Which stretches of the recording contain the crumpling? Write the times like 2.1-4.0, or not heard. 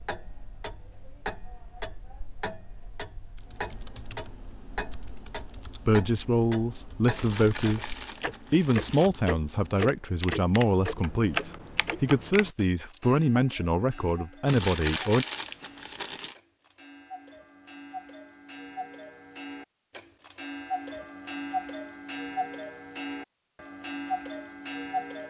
7.2-9.1, 14.4-16.4.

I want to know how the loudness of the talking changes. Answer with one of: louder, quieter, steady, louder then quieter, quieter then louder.
steady.